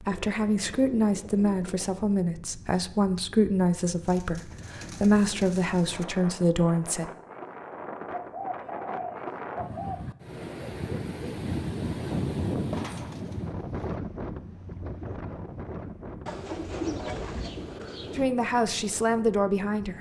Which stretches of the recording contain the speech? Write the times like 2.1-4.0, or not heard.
0.0-7.1, 18.1-19.9.